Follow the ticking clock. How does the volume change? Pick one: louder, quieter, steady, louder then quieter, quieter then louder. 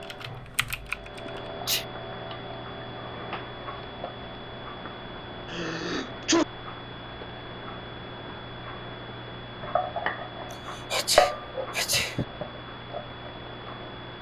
louder.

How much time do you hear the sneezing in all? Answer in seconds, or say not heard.
3 s.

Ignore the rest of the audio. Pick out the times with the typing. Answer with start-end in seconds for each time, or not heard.
0.0-1.5.